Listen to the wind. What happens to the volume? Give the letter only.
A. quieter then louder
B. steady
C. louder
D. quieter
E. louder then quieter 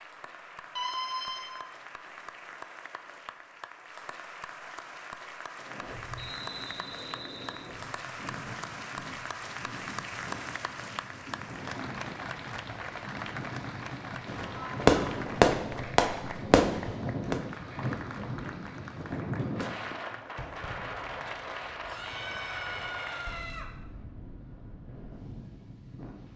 E.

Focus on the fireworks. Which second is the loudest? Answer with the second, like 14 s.
15 s.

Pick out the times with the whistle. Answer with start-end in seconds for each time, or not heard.
6.2-7.7.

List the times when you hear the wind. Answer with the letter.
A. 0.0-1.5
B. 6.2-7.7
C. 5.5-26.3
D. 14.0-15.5
C.